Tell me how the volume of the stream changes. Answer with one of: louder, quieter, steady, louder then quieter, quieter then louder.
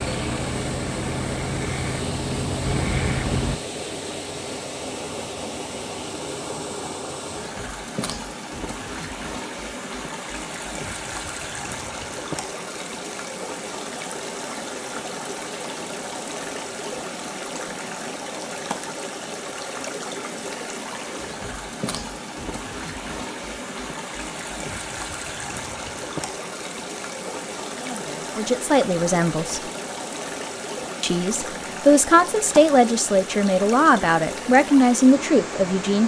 steady.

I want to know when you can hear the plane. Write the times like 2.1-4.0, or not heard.
0.0-3.6.